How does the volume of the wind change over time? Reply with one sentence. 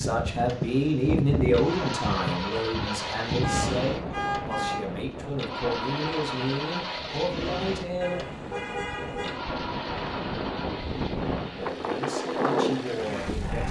The loudness of the wind goes down, then up.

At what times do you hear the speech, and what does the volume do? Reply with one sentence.
The speech can be heard from 0.0 to 8.2 s, getting quieter; and briefly from 11.6 to 13.6 s.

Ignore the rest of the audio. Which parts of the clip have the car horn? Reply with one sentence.
The car horn can be heard from 3.4 to 4.8 s and from 8.0 to 9.4 s.